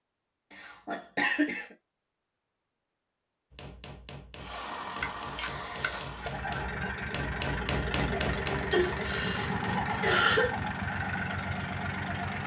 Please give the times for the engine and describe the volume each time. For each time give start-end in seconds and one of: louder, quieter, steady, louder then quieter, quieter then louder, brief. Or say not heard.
4.3-12.4 louder.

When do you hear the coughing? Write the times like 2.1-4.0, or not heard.
0.5-1.8, 5.0-6.4, 8.7-10.6.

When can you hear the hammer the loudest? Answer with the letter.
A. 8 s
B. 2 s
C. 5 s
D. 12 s
A.